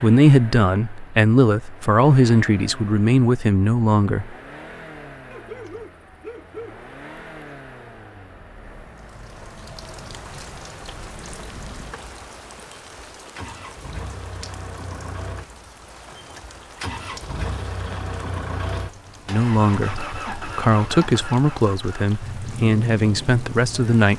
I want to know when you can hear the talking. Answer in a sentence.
You can hear the talking from 0.0 to 4.3 s and from 19.2 to 24.1 s.